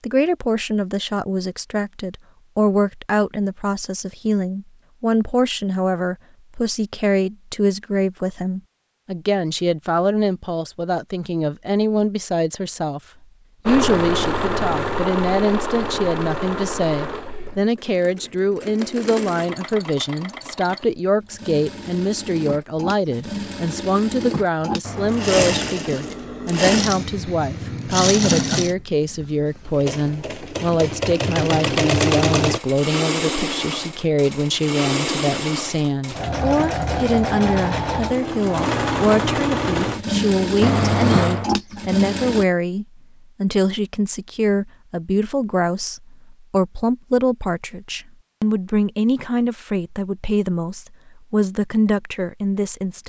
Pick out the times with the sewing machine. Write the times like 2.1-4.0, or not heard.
13.7-42.5.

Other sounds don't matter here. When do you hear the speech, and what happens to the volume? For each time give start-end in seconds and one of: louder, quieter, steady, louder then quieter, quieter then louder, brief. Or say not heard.
0.0-13.0 steady
13.7-53.0 steady.